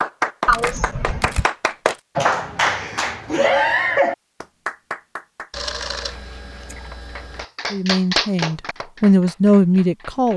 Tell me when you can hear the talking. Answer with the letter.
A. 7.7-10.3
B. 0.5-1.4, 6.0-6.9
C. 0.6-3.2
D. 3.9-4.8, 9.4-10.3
A.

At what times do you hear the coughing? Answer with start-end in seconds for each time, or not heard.
0.5-1.4, 6.0-6.9.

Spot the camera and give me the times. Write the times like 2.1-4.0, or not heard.
0.5-2.0, 5.5-7.5.